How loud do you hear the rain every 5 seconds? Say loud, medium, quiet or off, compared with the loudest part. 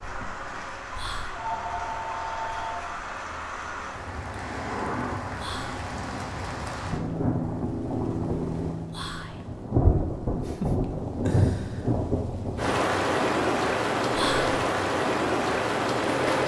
medium, medium, loud, loud.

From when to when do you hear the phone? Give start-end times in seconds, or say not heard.
1.3-2.9.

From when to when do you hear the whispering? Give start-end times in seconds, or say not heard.
0.9-1.5, 5.3-5.9, 8.9-9.4, 14.1-14.6.